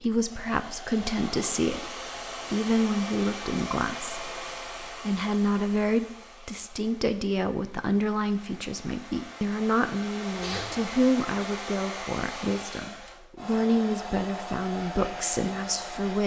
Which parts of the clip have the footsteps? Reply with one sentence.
The footsteps can't be heard in this clip.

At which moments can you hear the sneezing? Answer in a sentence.
You can hear the sneezing from 10.3 to 10.9 s.